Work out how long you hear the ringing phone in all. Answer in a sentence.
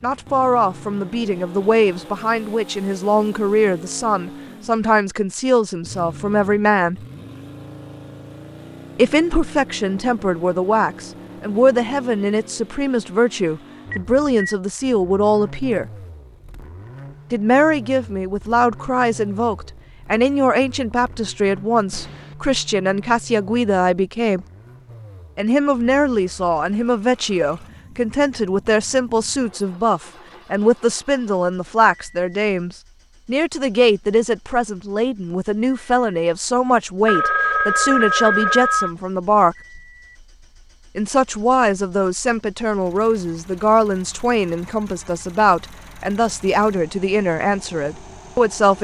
You can hear the ringing phone for 3 seconds altogether.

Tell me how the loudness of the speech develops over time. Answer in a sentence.
The volume of the speech stays about the same.